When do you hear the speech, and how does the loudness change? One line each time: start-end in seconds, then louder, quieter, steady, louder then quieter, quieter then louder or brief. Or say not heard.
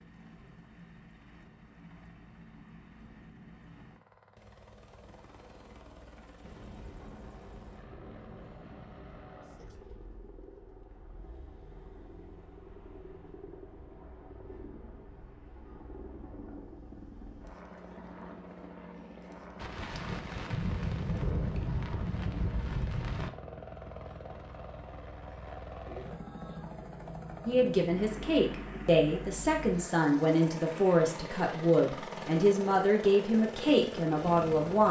27.4-34.8 steady.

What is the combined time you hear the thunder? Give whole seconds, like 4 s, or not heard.
7 s.